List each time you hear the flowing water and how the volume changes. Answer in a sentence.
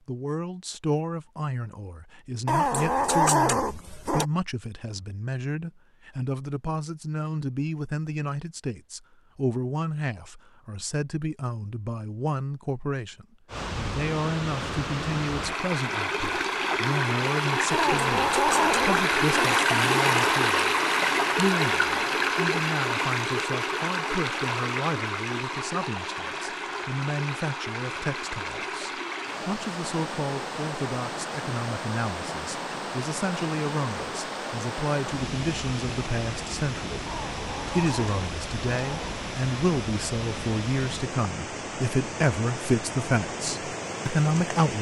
The flowing water can be heard from 13.4 to 44.7 s, getting quieter.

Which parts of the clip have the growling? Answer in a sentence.
The growling can be heard from 2.5 to 4.2 s, from 17.7 to 19.6 s and from 37.0 to 39.1 s.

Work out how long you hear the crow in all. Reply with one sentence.
You can't hear the crow here.